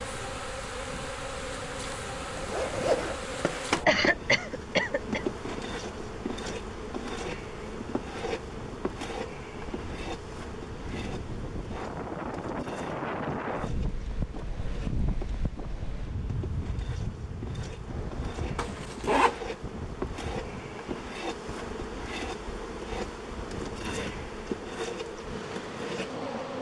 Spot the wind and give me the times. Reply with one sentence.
The wind can be heard from 0.0 to 26.5 s.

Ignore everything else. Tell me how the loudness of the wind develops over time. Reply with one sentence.
The volume of the wind goes up, then down.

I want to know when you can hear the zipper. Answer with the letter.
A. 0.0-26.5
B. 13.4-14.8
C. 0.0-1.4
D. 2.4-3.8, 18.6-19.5
D.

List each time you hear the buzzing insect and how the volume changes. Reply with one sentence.
The buzzing insect can be heard from 0.0 to 26.5 s, getting quieter then louder.